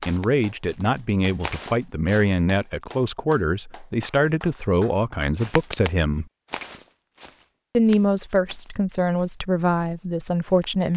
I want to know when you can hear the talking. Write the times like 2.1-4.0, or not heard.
0.1-6.2, 7.8-10.9.